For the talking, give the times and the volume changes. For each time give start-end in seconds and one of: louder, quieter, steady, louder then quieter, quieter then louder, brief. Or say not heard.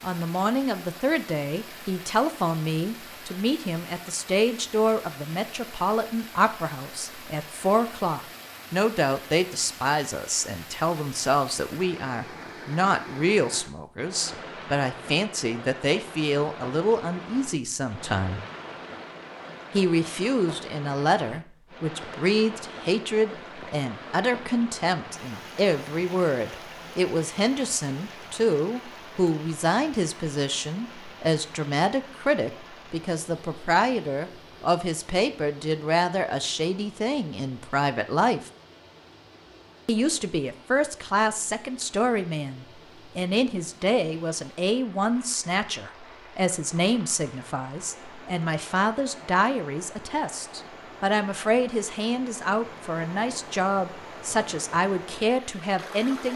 0.0-18.4 steady
19.7-38.5 steady
39.9-56.3 steady.